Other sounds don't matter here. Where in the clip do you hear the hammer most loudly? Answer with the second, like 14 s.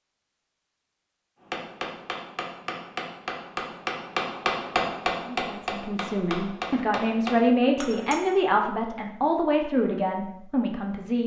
5 s.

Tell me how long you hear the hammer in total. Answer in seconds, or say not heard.
7 s.